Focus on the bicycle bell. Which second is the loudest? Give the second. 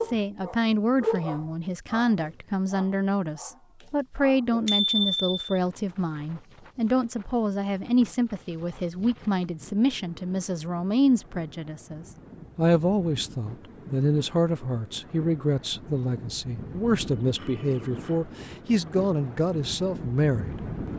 5 s.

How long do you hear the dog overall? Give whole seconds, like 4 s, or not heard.
5 s.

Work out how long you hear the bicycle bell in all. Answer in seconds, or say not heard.
2 s.